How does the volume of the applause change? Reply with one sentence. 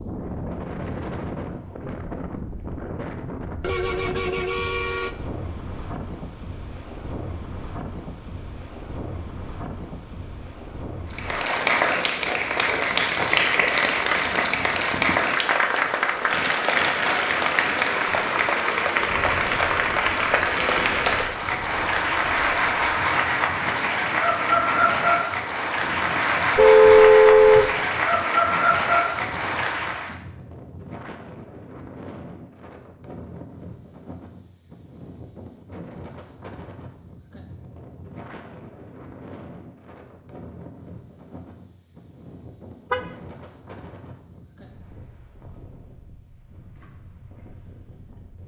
The loudness of the applause stays about the same.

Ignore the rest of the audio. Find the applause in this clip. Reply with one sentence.
You can hear the applause from 11.1 to 30.1 s.